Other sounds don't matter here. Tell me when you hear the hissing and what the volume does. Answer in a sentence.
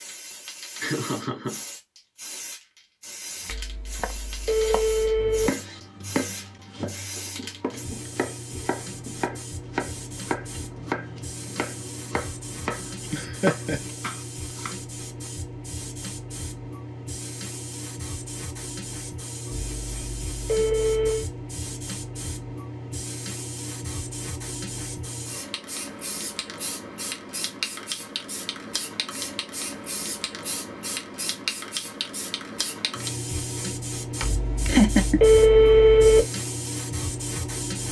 You can hear the hissing from 0.0 to 37.8 s, getting louder.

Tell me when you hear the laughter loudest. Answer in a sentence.
The loudest moment of the laughter is at 35 seconds.